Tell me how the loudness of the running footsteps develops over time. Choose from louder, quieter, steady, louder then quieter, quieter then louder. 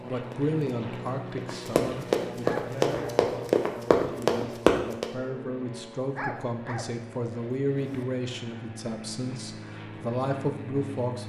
louder.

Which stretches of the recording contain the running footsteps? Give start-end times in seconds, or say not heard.
0.1-5.1.